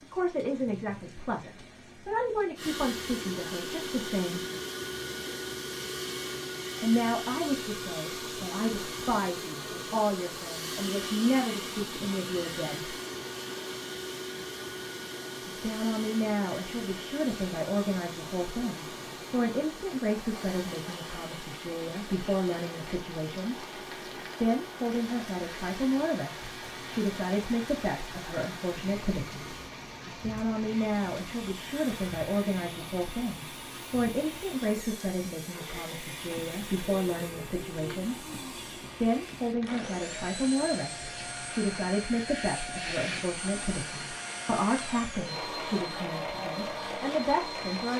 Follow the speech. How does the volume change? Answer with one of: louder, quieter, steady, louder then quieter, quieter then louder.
steady.